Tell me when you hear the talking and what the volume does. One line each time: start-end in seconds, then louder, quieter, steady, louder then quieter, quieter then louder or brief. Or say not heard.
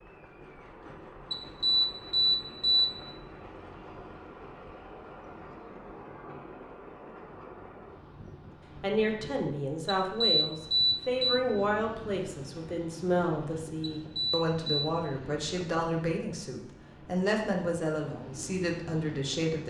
8.8-19.6 steady.